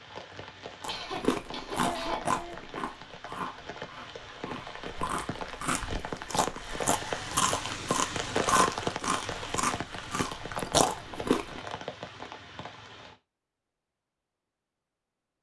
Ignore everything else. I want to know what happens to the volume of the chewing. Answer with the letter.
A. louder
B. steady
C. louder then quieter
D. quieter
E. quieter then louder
E.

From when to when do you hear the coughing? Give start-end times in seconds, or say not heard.
0.8-2.6.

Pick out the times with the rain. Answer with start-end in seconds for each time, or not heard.
0.0-13.2.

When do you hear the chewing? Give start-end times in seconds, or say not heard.
0.8-11.6.